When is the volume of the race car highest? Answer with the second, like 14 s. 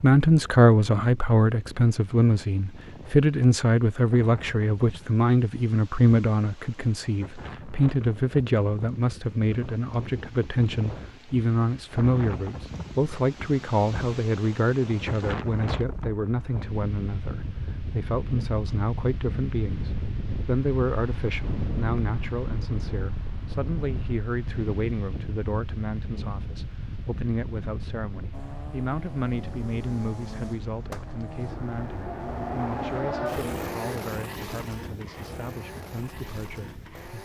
33 s.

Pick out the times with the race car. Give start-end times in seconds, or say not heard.
28.3-37.1.